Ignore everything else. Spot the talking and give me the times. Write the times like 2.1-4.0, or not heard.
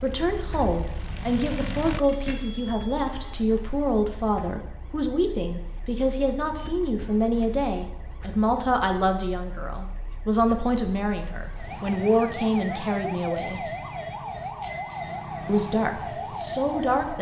0.0-13.7, 15.4-17.1.